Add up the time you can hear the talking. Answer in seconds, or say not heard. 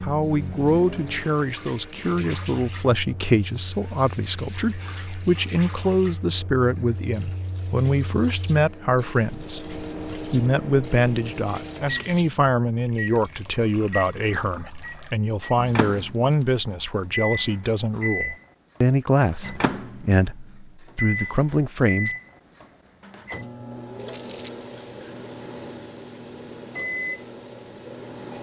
22 s.